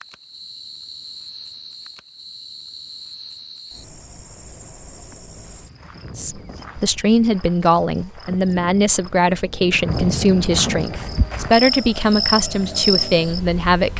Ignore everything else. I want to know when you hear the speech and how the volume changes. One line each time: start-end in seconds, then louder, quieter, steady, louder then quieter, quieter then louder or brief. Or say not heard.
6.2-13.9 steady.